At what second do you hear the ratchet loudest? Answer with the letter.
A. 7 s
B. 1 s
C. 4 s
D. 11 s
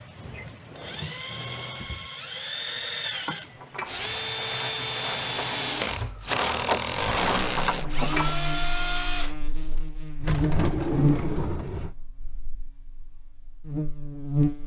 A.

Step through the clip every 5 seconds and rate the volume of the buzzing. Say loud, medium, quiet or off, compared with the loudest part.
off, medium, loud.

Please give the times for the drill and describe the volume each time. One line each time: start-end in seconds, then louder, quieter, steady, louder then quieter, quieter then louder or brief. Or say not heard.
0.0-9.3 louder.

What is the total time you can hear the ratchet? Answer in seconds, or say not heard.
5 s.